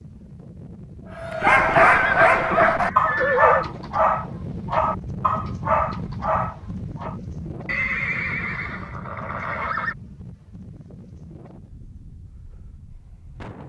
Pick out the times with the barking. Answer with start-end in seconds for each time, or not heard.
1.1-7.2.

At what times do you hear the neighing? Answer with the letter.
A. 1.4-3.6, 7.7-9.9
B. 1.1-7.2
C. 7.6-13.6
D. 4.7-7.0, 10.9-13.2
A.